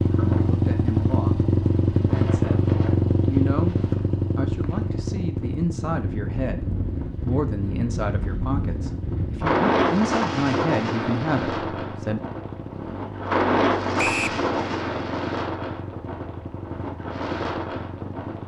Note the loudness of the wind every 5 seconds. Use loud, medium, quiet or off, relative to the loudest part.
quiet, loud, loud, medium.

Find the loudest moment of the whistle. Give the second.
14 s.